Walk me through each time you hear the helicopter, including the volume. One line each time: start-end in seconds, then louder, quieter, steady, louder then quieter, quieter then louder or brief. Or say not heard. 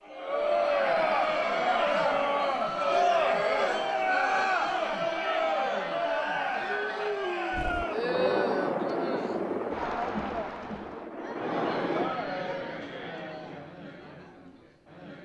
7.5-12.1 quieter then louder.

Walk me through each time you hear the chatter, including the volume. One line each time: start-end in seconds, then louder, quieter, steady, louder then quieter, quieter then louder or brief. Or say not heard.
0.1-15.2 quieter.